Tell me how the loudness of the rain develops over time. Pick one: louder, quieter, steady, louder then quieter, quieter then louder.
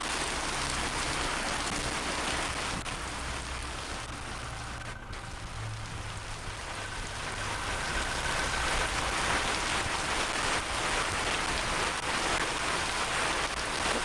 quieter then louder.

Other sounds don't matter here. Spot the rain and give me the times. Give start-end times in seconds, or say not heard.
0.0-14.0.